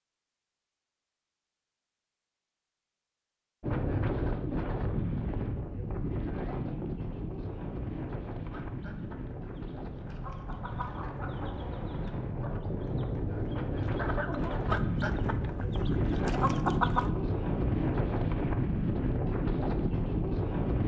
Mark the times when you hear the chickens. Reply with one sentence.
The chickens can be heard from 8.5 to 17.1 s.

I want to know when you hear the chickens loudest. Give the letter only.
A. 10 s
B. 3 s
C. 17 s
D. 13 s
C.